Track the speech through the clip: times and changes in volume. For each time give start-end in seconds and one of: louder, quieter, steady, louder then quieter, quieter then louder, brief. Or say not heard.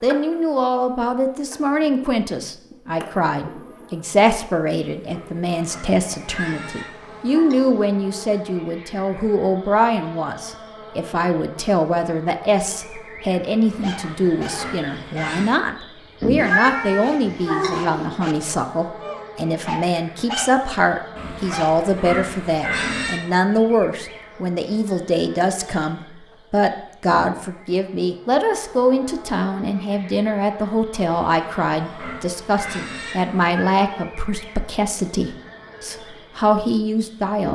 0.0-37.5 steady.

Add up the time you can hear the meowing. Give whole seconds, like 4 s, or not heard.
4 s.